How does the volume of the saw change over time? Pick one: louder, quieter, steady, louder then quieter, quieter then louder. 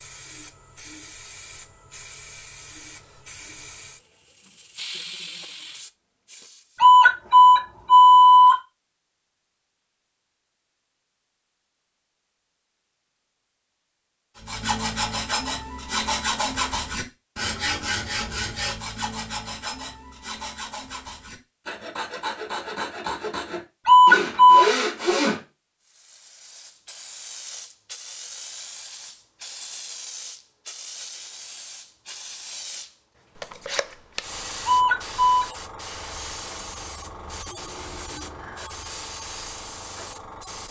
quieter then louder.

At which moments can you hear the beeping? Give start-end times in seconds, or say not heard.
6.8-8.6, 23.9-24.6, 34.6-35.5.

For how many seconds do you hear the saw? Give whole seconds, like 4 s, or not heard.
11 s.